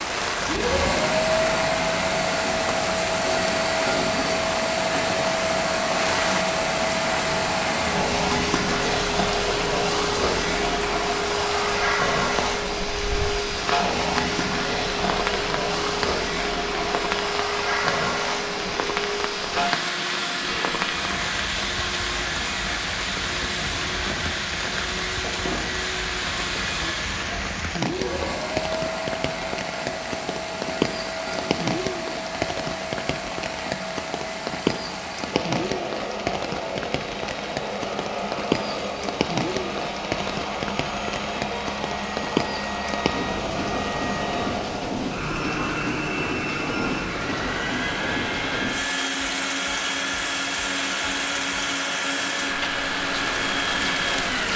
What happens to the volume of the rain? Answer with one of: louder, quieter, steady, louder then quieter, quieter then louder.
steady.